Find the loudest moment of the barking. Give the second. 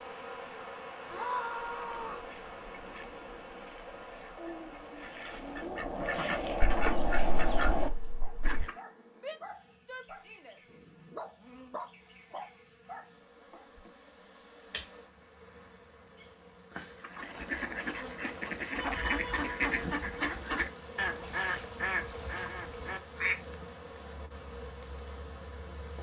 12 s.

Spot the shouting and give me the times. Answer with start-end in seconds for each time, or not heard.
1.1-2.3, 9.2-10.6, 18.8-19.5.